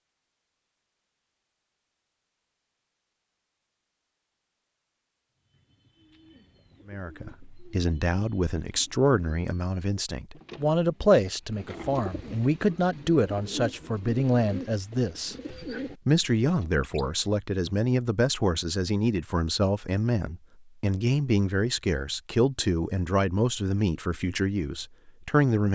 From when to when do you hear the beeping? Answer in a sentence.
The beeping can't be heard in this clip.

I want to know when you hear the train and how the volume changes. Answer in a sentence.
You can't hear the train here.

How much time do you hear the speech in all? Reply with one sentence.
You can hear the speech for 19 seconds altogether.